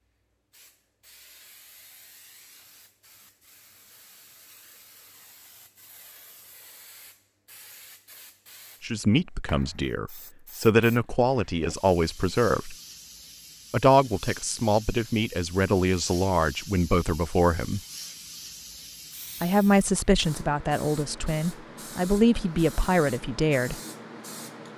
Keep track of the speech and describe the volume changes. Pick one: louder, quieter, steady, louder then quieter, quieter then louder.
steady.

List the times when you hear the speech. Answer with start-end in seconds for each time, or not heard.
8.8-12.8, 13.7-17.8, 19.4-23.8.